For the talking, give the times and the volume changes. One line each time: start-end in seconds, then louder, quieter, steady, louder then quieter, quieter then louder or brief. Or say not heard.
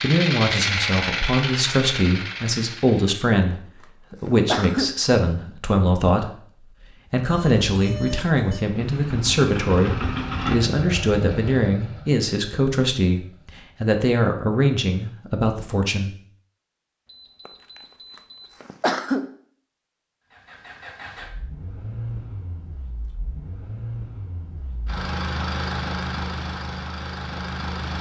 0.0-16.1 steady.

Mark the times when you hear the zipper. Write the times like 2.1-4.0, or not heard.
not heard.